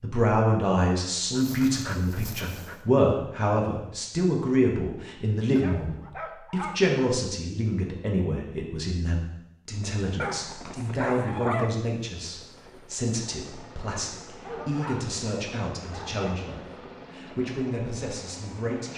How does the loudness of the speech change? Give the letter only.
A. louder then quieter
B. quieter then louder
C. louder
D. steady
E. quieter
E.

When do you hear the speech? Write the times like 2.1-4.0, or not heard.
0.0-18.9.